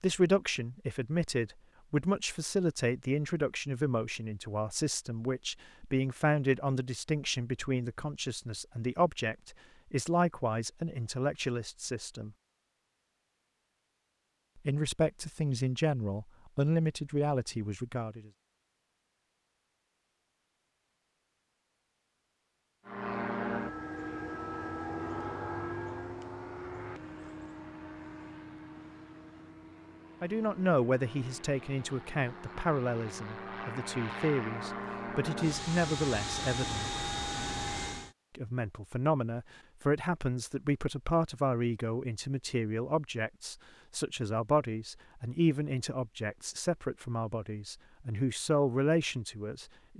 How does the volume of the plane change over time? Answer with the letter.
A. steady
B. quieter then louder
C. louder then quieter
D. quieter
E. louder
B.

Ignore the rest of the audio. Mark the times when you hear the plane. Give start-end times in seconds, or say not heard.
22.9-38.1.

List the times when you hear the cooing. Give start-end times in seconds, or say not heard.
not heard.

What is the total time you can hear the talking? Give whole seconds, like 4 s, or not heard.
34 s.